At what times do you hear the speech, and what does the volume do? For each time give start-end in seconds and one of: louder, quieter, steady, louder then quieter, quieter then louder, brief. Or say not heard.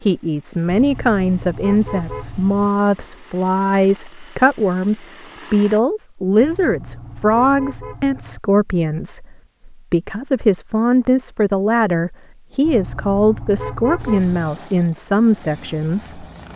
0.0-16.2 steady.